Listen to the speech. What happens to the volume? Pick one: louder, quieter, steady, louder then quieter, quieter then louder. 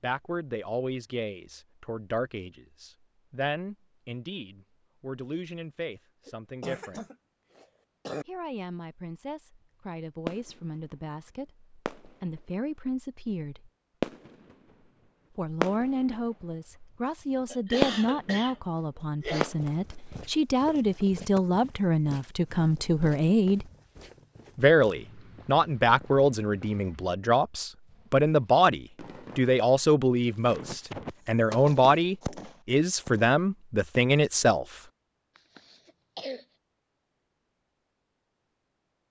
louder.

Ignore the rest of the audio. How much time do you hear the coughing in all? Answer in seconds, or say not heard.
5 s.